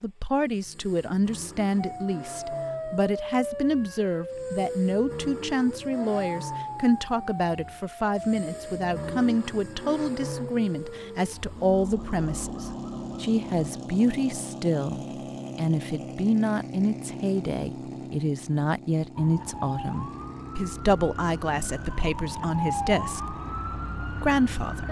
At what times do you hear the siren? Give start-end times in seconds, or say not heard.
1.8-13.4, 19.1-24.8.